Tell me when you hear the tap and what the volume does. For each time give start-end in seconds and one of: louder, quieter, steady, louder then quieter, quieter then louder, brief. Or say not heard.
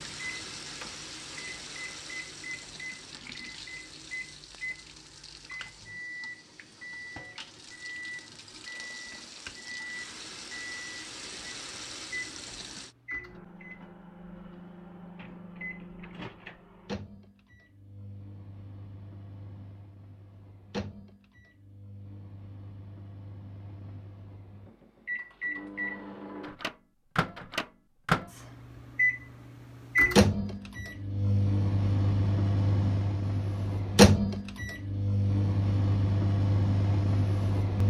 0.0-12.9 quieter then louder.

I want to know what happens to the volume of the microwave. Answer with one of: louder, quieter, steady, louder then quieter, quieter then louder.
louder.